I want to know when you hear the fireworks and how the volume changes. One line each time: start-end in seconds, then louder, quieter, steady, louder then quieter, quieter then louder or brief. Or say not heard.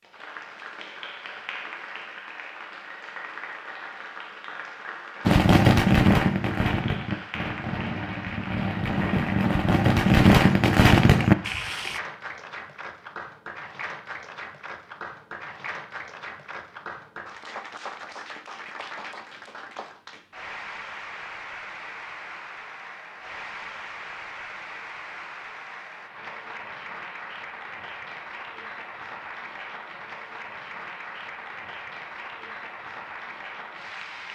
5.2-12.0 quieter then louder.